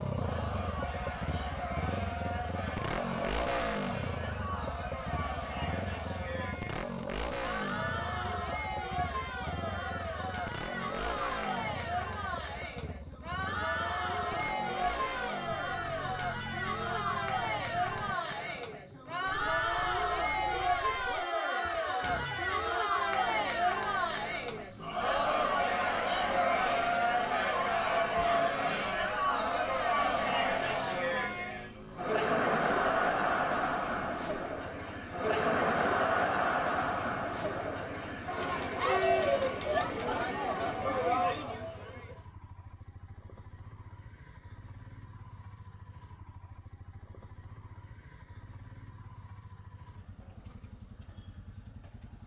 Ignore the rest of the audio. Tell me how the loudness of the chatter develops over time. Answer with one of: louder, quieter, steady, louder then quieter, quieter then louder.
louder.